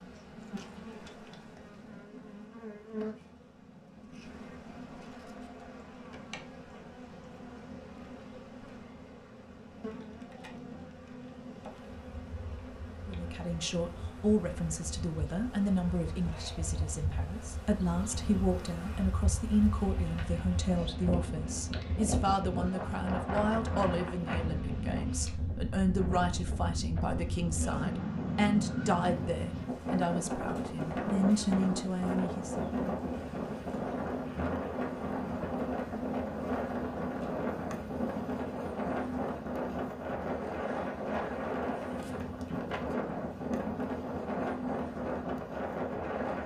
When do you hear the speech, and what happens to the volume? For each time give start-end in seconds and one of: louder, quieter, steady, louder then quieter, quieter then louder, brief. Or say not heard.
13.0-32.6 steady.